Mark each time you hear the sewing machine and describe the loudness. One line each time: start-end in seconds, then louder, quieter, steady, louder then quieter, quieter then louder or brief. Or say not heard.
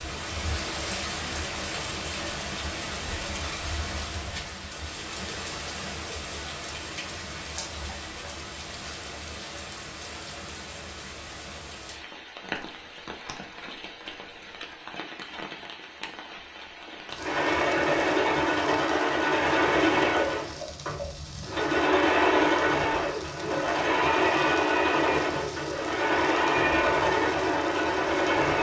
17.1-28.5 steady.